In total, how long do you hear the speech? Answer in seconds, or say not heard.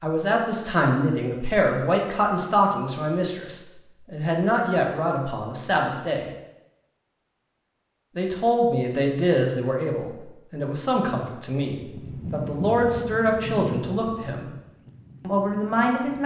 14 s.